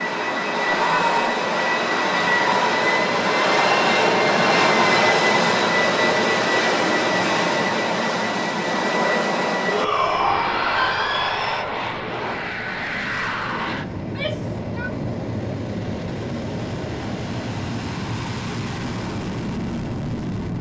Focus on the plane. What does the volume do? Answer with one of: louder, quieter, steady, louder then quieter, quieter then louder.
quieter.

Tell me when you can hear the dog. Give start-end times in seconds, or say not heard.
not heard.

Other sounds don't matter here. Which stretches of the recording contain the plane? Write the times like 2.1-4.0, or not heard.
0.0-20.5.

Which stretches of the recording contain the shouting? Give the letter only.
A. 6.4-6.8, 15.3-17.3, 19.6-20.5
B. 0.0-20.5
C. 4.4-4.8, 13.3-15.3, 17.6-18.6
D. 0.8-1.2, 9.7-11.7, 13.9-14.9
D.